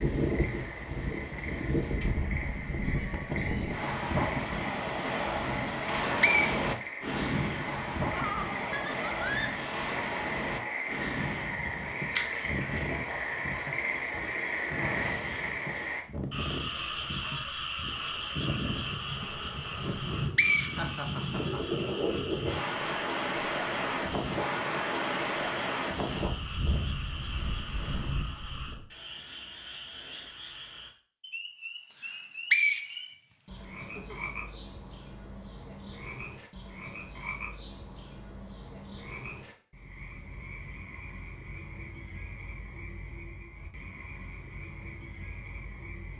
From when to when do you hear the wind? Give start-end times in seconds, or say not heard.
0.0-28.9.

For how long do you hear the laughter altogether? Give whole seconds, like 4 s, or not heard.
3 s.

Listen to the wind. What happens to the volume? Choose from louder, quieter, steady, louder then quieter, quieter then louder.
quieter then louder.